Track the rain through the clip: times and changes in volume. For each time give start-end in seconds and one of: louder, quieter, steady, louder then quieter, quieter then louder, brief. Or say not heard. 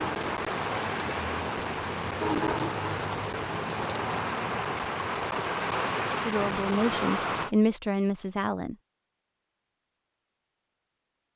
0.0-7.5 steady.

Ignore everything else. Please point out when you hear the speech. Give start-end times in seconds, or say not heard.
6.2-8.8.